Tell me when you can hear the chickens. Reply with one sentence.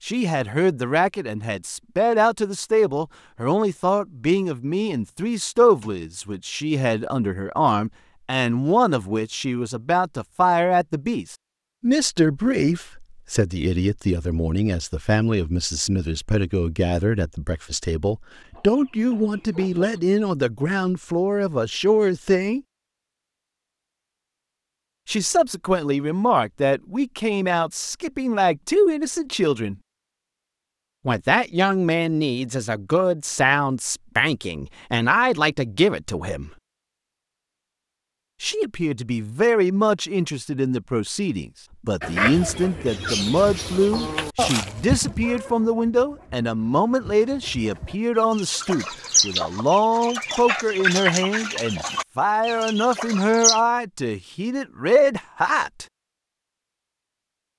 You can hear the chickens from 18.4 to 20.0 s and from 42.0 to 53.6 s.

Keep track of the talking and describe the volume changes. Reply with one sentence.
The loudness of the talking stays about the same.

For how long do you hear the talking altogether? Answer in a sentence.
You can hear the talking for 50 seconds altogether.